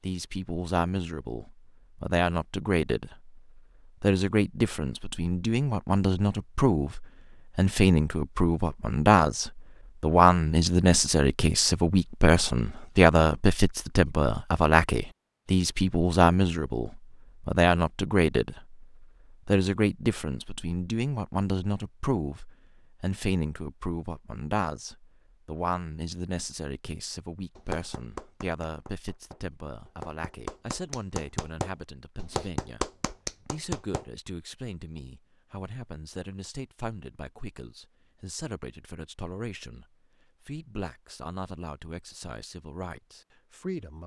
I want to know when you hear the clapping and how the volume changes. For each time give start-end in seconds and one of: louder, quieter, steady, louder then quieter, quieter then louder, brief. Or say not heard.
27.6-34.0 louder.